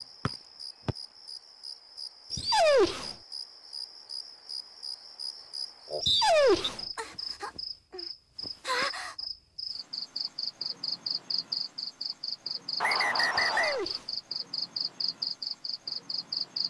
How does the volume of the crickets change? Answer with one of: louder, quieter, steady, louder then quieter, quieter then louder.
louder.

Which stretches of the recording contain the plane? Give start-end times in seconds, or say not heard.
not heard.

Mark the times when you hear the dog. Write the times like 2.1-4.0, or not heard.
2.3-3.1, 6.0-6.8, 13.3-14.2.